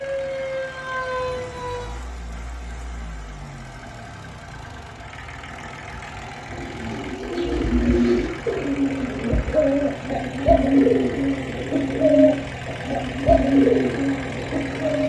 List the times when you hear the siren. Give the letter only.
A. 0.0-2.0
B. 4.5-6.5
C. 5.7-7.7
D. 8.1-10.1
A.